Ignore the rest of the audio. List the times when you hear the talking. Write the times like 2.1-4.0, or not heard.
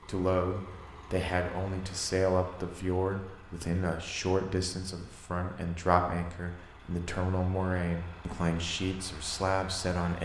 0.1-10.1.